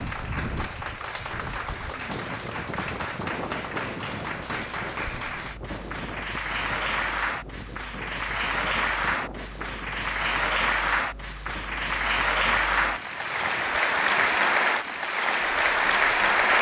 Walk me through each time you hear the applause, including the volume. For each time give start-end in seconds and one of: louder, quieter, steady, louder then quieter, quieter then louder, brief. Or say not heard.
0.0-16.5 louder.